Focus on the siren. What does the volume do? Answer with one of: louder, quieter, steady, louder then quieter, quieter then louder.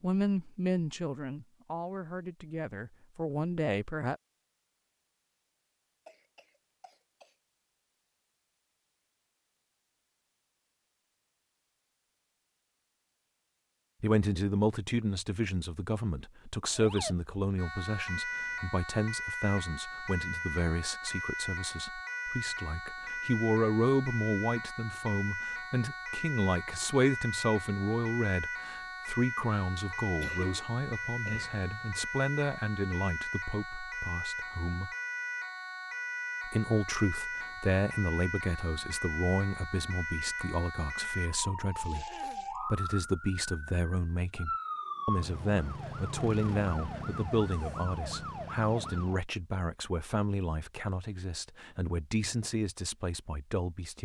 steady.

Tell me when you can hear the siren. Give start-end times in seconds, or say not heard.
16.8-49.2.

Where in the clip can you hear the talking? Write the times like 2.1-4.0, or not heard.
0.0-4.2, 14.0-34.9, 36.5-53.9.